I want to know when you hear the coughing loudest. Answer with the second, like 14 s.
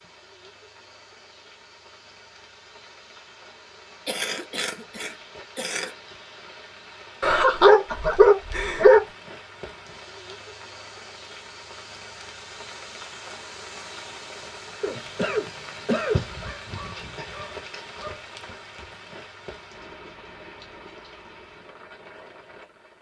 16 s.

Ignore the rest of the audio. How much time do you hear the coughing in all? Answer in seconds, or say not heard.
4 s.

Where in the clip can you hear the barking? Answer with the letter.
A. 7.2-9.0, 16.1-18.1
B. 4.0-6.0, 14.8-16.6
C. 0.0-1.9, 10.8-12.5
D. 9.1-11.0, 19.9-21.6
A.